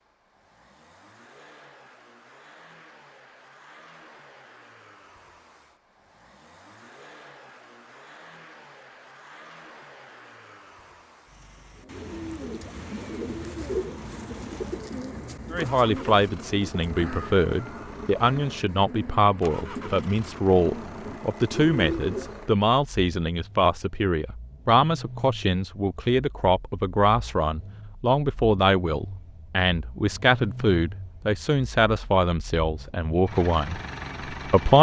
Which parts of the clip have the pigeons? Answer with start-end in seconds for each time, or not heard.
11.8-22.5.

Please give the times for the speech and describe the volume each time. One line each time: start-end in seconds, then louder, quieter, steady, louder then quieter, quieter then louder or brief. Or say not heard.
15.5-34.7 steady.